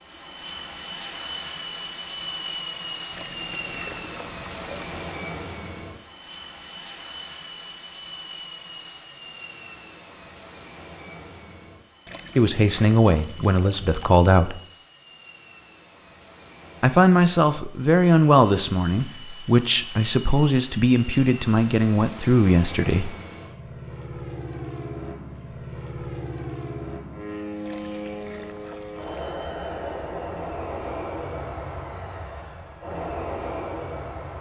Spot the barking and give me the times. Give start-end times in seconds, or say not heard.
not heard.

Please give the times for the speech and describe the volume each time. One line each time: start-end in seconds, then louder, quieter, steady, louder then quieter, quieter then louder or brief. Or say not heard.
12.3-14.6 brief
16.8-23.1 steady.